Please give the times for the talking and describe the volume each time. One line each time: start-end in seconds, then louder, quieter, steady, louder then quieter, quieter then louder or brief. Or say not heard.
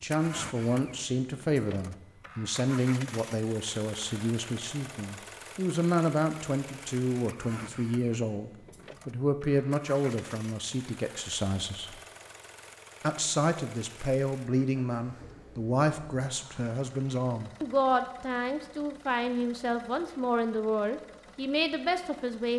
0.0-12.0 steady
13.0-22.5 steady.